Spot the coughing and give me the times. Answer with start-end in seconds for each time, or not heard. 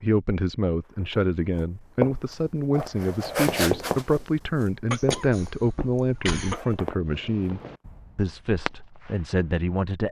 4.9-6.8.